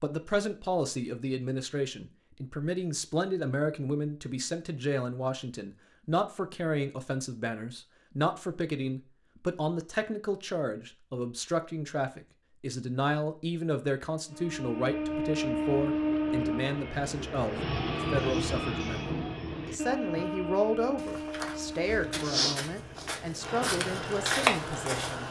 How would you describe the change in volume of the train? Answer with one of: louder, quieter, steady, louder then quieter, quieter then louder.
quieter.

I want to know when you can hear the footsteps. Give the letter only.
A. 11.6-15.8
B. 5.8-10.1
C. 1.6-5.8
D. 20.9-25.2
D.